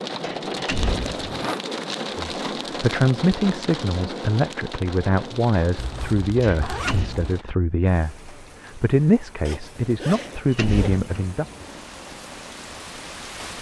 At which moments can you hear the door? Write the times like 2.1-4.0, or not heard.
0.2-1.3, 6.4-7.2, 10.1-11.3.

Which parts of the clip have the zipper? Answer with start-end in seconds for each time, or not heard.
1.1-1.6, 5.8-7.3, 9.4-11.0.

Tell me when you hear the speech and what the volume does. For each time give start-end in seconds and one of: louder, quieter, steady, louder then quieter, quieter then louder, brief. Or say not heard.
2.1-11.4 steady.